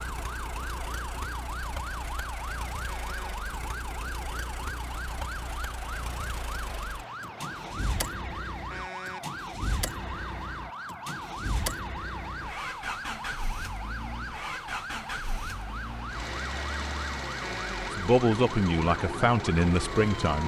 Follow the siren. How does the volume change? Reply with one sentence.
The loudness of the siren stays about the same.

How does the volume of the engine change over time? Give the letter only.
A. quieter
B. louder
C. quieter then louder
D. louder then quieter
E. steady
B.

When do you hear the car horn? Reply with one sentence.
You can hear the car horn from 2.9 to 3.5 s, from 8.7 to 9.3 s and from 17.4 to 18.0 s.